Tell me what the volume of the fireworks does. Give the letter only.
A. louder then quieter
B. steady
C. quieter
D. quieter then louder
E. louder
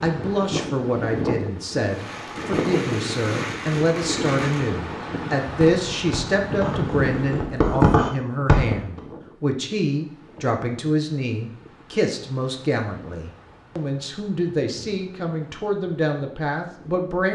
E.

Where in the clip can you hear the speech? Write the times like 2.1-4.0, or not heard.
0.0-17.3.